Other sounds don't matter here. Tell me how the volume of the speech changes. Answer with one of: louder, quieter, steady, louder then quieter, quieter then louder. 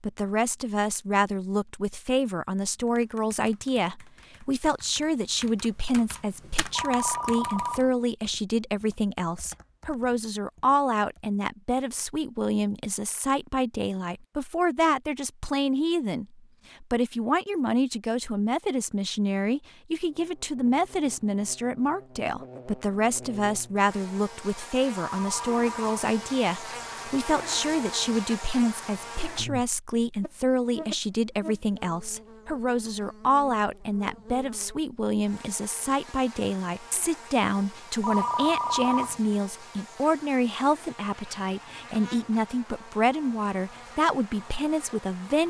steady.